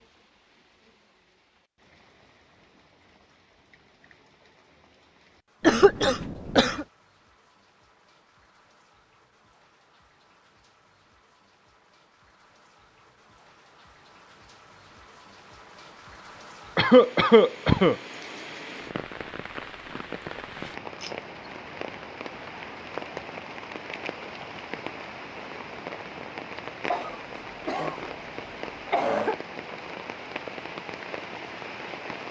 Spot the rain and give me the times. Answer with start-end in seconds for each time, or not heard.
0.0-32.2.